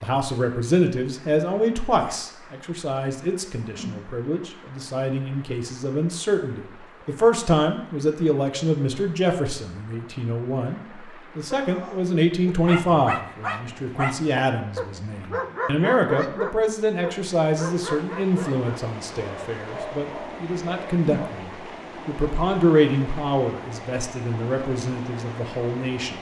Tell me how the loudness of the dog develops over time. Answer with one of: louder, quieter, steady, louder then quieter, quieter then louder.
quieter.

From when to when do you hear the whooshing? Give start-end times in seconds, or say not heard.
3.6-4.1, 20.9-21.4.